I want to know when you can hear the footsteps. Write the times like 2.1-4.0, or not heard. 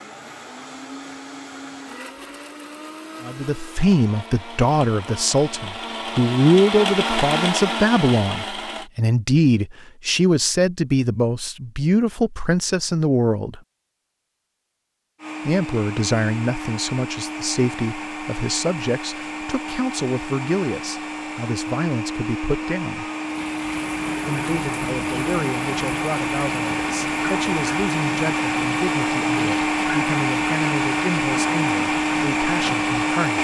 not heard.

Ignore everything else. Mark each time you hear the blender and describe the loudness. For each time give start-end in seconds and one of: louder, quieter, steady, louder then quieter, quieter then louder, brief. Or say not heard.
0.0-8.9 louder
15.2-33.3 louder.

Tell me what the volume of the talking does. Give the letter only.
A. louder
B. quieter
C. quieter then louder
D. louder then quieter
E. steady
B.